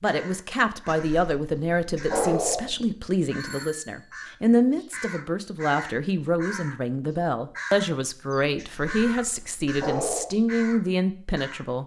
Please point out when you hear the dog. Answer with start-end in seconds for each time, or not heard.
0.8-2.8, 8.6-10.3.